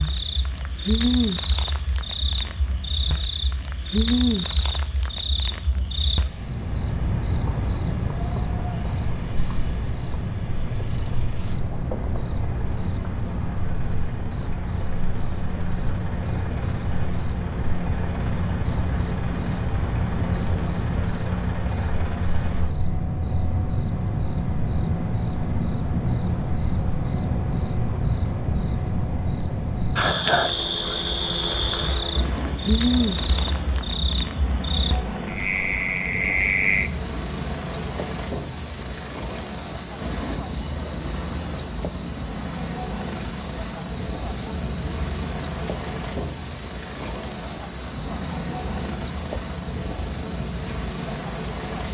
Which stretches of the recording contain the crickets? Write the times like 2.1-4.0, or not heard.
0.0-51.9.